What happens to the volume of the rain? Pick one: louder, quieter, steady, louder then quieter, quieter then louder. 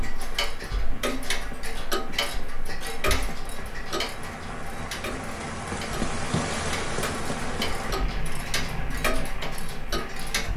louder then quieter.